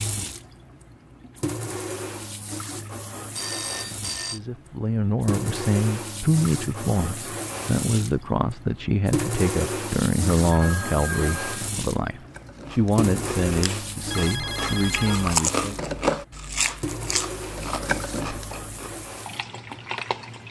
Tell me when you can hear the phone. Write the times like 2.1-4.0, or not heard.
3.4-4.4, 10.5-11.7, 14.1-15.2.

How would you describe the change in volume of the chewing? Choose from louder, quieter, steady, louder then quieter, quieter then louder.
louder then quieter.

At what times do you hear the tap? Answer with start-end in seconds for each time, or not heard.
0.0-20.4.